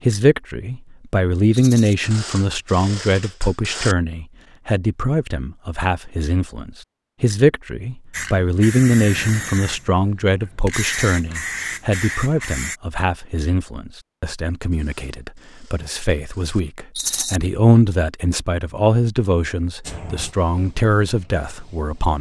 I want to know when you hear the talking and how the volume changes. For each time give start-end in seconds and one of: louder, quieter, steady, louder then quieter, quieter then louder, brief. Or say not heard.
0.1-22.1 quieter then louder.